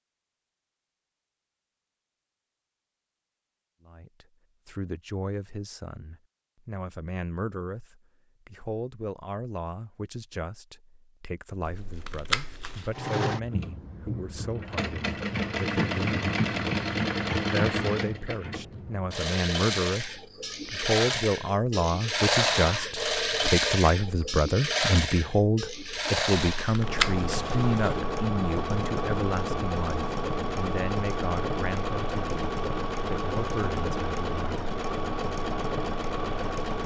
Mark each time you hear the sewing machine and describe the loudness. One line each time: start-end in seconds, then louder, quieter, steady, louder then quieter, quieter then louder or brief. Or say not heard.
12.9-36.8 steady.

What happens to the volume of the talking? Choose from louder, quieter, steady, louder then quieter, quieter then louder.
louder then quieter.